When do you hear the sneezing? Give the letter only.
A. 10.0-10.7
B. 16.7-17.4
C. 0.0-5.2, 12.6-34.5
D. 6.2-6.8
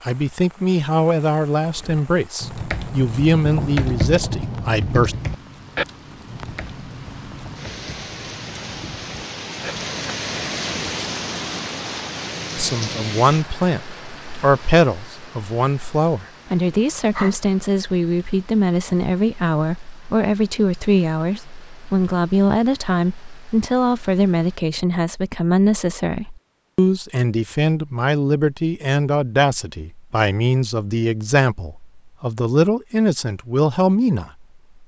B.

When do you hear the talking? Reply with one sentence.
The talking can be heard from 0.0 to 5.2 s and from 12.6 to 34.5 s.